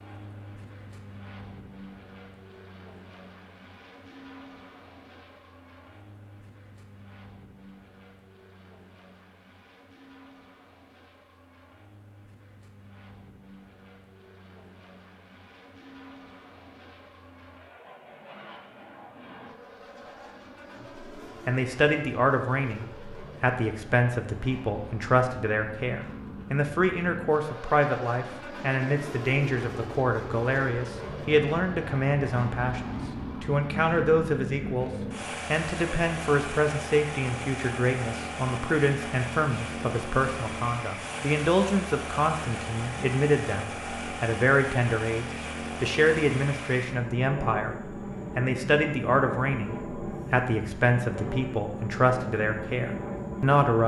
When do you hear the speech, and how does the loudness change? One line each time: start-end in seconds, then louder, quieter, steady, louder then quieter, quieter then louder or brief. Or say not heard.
21.4-34.9 steady
35.5-53.8 steady.